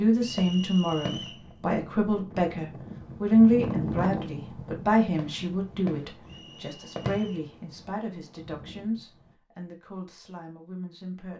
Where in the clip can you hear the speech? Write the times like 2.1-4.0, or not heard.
0.0-11.3.